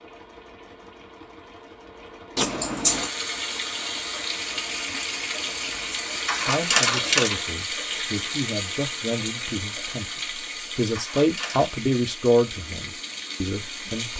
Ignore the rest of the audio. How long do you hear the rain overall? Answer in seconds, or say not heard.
11 s.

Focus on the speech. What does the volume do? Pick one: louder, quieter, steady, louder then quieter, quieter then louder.
louder then quieter.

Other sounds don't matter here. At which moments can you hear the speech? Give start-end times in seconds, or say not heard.
6.5-10.2, 10.8-14.1.